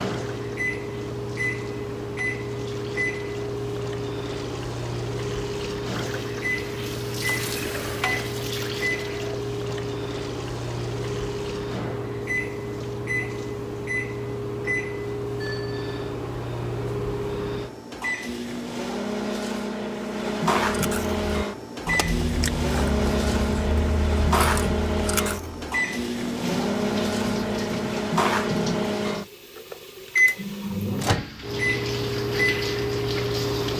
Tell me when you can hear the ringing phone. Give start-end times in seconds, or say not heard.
15.4-16.1.